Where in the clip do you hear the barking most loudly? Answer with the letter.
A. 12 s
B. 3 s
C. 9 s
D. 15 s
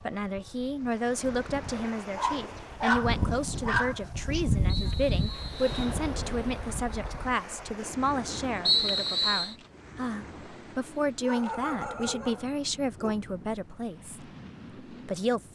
B.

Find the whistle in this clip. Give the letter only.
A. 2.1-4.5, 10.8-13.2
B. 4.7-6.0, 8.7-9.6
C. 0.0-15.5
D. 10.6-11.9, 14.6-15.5
B.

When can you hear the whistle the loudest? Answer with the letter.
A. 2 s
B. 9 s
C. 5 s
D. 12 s
B.